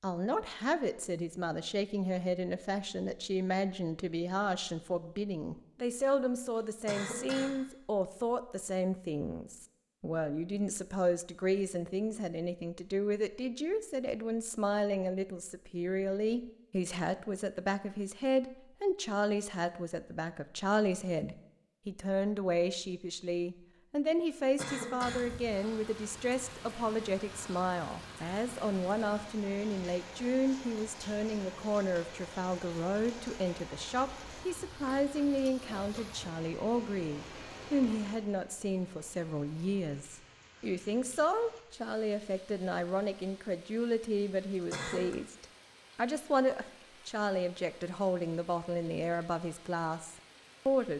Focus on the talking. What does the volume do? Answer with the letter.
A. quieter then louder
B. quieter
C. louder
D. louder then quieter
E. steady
E.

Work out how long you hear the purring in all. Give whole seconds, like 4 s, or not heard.
not heard.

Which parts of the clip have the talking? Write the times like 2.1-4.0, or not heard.
0.0-50.9.